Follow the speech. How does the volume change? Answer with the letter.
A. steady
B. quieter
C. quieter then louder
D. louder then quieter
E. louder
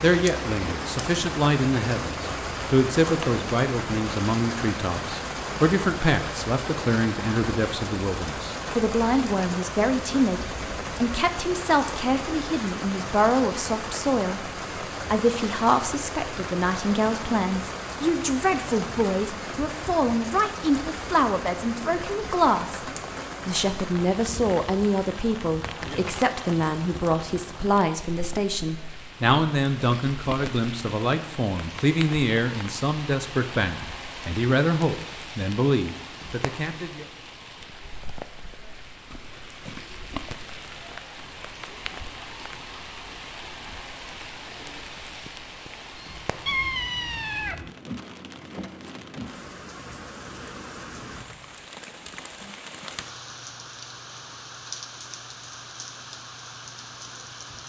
A.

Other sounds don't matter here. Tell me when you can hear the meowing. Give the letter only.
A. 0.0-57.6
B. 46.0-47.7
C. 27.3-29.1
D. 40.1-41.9
B.